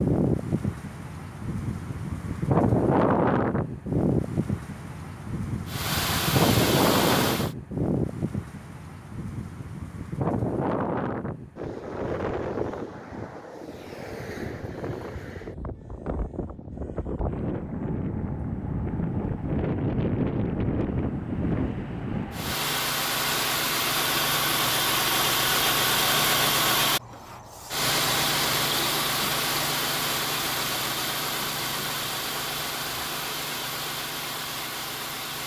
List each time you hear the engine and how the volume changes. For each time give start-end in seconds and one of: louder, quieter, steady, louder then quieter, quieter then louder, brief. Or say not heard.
5.7-7.5 brief
22.3-35.4 quieter.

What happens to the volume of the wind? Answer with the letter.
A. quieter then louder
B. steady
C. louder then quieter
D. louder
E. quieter
A.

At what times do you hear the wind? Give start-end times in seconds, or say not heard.
0.0-22.6.